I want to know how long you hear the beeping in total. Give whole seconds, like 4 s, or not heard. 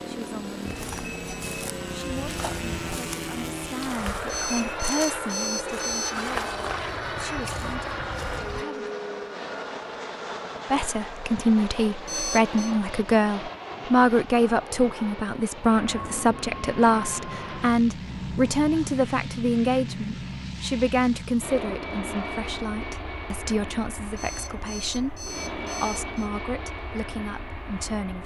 5 s.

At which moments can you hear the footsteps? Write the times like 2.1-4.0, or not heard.
0.7-8.7.